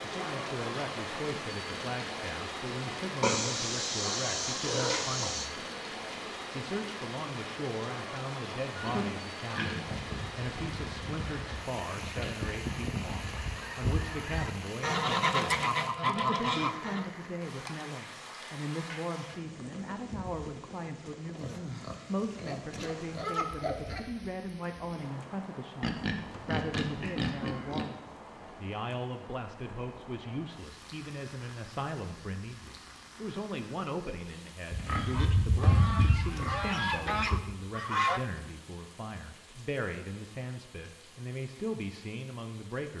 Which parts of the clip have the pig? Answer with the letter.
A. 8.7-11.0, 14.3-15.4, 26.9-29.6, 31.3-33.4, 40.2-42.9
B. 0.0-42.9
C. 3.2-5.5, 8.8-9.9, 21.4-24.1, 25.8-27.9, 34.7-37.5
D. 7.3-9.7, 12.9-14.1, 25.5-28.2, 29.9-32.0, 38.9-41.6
C.